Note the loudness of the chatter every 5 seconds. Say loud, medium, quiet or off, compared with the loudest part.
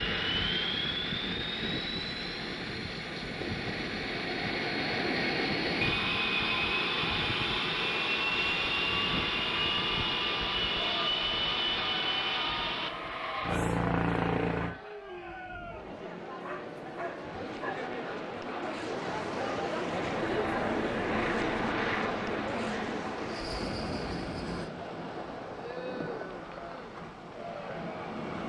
off, off, medium, loud, loud, medium.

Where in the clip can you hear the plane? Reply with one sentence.
The plane can be heard from 0.0 to 14.8 s and from 19.9 to 24.7 s.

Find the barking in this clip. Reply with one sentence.
The barking can be heard from 16.4 to 17.9 s.